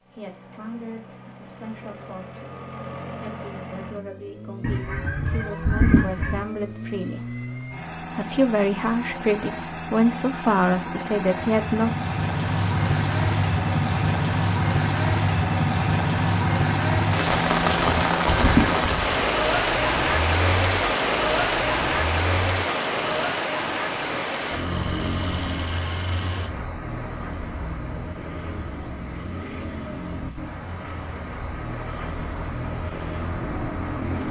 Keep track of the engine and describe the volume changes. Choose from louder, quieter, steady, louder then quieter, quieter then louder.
louder then quieter.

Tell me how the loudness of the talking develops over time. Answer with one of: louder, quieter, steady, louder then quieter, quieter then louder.
louder.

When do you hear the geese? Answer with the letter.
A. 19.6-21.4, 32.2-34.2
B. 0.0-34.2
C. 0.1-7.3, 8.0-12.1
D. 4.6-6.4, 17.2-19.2
D.